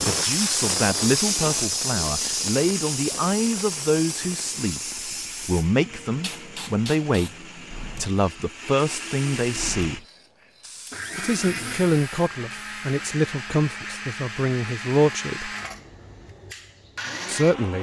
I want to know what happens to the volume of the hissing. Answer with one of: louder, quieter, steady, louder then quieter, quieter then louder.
quieter.